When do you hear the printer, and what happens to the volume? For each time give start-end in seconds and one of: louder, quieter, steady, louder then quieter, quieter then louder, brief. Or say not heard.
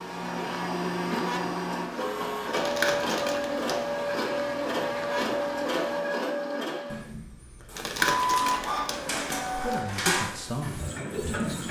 0.0-11.6 steady.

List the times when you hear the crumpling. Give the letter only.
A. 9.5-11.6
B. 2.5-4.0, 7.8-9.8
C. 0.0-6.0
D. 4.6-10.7
B.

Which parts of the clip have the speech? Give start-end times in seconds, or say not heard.
9.5-11.6.